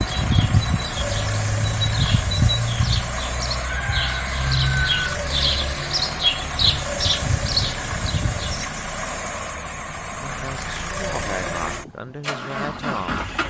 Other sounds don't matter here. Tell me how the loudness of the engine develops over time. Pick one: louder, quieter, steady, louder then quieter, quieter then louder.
steady.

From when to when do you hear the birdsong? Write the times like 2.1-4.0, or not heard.
0.0-8.7.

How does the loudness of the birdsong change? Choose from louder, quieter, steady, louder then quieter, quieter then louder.
steady.